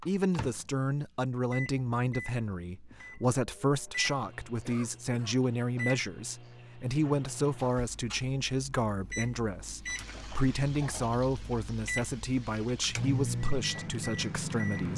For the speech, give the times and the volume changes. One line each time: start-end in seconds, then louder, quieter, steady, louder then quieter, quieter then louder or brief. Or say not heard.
0.1-14.9 steady.